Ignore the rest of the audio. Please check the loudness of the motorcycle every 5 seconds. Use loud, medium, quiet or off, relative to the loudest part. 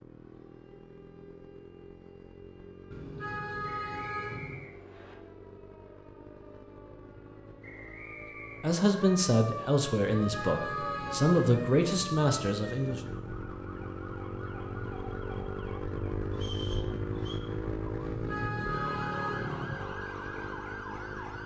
quiet, quiet, medium, loud, medium.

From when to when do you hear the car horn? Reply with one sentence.
The car horn can be heard from 2.9 to 4.7 s, from 10.2 to 12.1 s and from 17.9 to 19.9 s.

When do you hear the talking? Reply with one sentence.
The talking can be heard from 8.6 to 13.0 s.